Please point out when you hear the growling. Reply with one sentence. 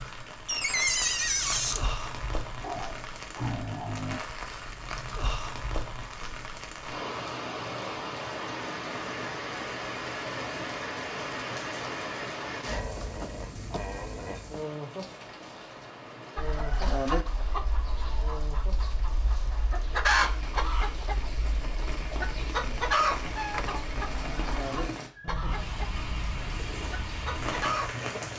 The growling can be heard from 2.6 to 4.2 s, from 12.7 to 14.5 s and from 24.1 to 25.4 s.